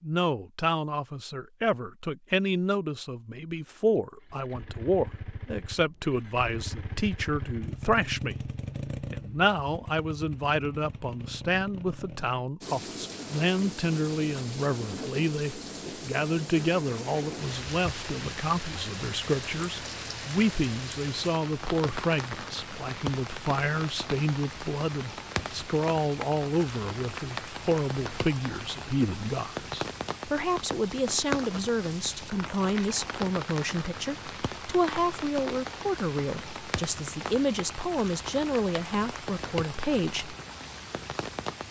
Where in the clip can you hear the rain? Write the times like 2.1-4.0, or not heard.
12.6-41.6.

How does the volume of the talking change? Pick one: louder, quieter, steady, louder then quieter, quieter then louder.
steady.